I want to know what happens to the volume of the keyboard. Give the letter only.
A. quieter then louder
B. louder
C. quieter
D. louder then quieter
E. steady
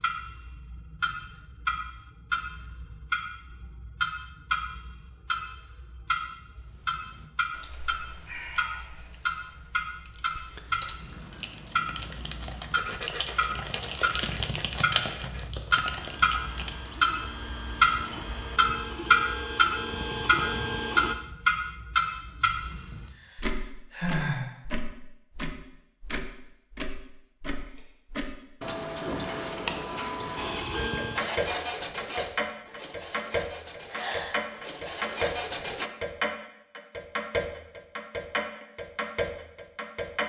B.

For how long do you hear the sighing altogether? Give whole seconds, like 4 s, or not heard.
3 s.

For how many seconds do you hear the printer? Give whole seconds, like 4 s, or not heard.
14 s.